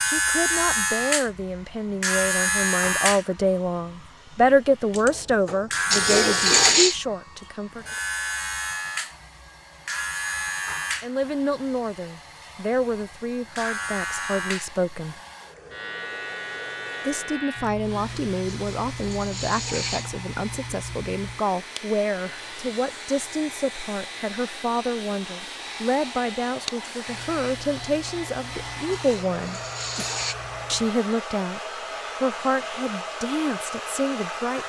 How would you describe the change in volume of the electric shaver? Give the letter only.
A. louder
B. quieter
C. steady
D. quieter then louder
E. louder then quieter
B.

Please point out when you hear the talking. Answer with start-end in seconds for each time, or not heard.
0.0-7.8, 11.0-15.2, 17.0-29.6, 30.7-34.6.